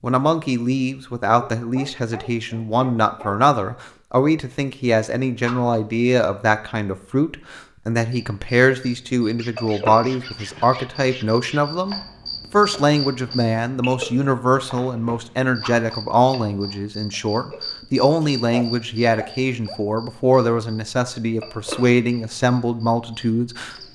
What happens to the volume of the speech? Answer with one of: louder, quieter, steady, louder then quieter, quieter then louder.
steady.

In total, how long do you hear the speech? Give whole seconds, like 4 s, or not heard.
24 s.